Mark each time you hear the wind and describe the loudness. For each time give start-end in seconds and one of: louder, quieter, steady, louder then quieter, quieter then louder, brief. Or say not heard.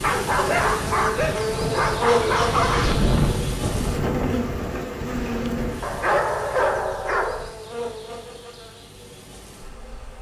0.0-6.0 louder then quieter.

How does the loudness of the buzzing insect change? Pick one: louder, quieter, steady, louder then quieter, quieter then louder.
quieter.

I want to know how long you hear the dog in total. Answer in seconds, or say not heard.
5 s.